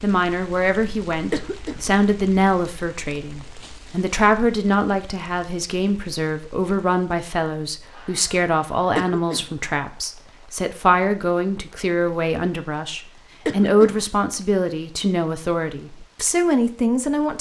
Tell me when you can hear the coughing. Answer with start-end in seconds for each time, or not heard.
1.3-1.9, 8.9-9.6, 13.4-14.1.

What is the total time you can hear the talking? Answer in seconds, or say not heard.
17 s.